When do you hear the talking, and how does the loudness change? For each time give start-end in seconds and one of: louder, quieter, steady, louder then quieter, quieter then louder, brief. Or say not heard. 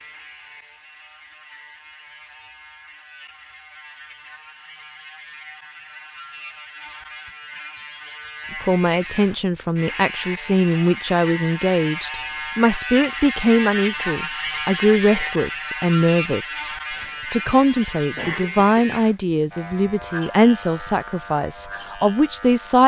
8.6-22.8 steady.